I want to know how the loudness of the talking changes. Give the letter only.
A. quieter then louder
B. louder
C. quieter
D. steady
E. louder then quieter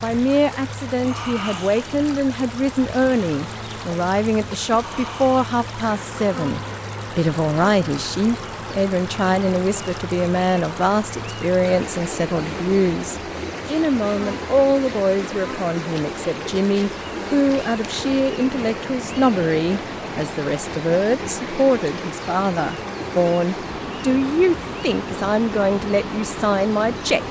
D.